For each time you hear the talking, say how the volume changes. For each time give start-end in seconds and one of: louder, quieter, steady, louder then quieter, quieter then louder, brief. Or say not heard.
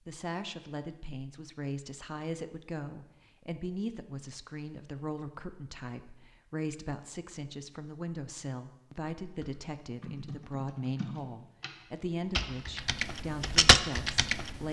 0.1-14.6 steady.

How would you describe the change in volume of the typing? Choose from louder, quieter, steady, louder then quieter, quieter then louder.
louder.